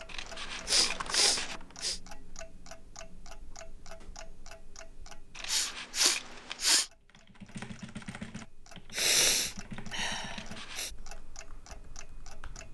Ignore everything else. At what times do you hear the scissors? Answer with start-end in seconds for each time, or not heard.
0.1-1.6, 5.3-6.7, 10.2-10.9.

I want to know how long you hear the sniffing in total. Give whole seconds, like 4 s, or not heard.
5 s.